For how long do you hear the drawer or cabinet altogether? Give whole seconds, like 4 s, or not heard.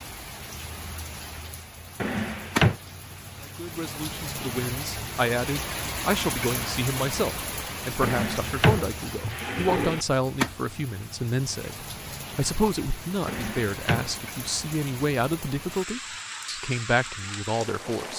4 s.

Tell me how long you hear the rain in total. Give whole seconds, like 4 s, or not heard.
18 s.